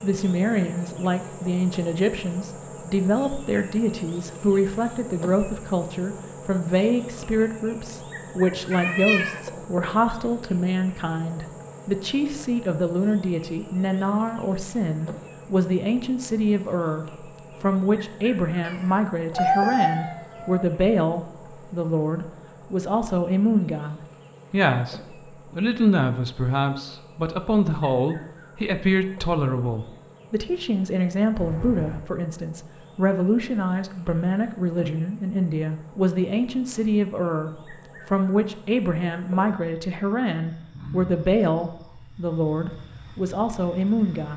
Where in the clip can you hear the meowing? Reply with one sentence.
You can hear the meowing from 8.7 to 9.4 s, from 18.6 to 20.6 s and from 31.4 to 32.0 s.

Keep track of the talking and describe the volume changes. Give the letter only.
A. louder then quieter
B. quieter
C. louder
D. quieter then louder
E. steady
E.